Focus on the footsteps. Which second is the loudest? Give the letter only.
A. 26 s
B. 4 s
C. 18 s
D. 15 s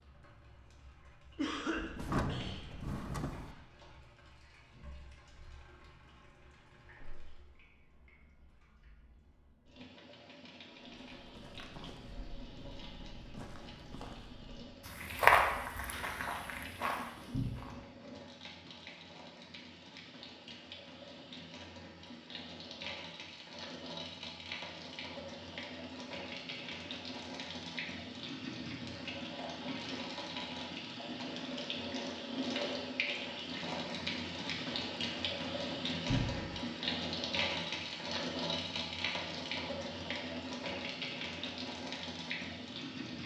D.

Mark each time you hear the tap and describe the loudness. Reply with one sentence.
The tap can be heard from 0.0 to 43.2 s, getting louder.